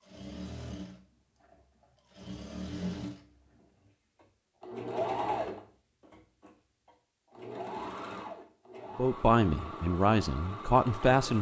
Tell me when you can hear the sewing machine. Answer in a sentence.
You can hear the sewing machine from 0.0 to 11.3 s.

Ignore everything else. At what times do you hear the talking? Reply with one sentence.
The talking can be heard from 8.9 to 11.3 s.